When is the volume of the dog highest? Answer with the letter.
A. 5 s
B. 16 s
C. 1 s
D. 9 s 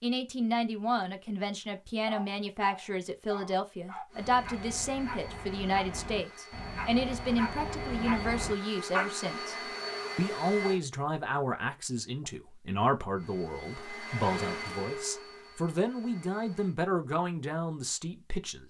D.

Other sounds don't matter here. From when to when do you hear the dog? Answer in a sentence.
You can hear the dog from 2.0 to 9.1 s.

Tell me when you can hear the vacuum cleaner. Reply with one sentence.
The vacuum cleaner can be heard from 4.0 to 10.8 s and from 13.2 to 16.8 s.